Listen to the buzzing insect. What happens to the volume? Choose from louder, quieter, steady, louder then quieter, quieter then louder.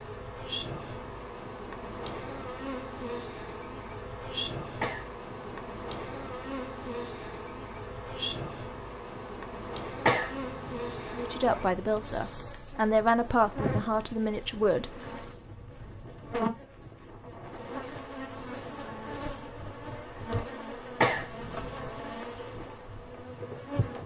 steady.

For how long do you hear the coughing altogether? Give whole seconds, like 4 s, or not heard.
3 s.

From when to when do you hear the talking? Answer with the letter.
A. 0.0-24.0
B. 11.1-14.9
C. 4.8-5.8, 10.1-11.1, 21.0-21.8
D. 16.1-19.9
B.